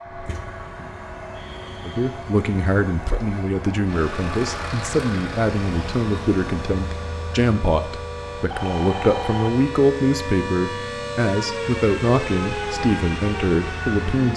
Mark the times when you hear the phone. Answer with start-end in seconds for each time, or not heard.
8.5-9.6.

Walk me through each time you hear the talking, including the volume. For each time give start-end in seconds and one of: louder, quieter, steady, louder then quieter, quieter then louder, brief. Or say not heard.
1.9-14.3 steady.